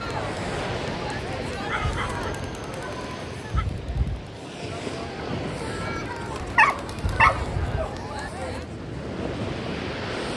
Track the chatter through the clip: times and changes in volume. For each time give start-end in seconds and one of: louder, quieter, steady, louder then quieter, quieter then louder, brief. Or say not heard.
0.0-8.7 quieter then louder.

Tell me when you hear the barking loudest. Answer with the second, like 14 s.
7 s.